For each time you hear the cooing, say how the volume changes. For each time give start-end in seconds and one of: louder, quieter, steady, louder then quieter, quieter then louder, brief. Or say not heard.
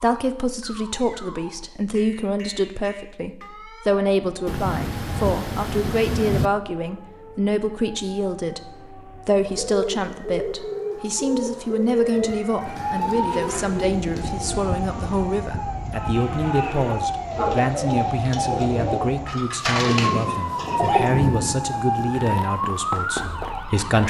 9.4-21.1 quieter then louder.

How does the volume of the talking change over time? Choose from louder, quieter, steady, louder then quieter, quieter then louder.
steady.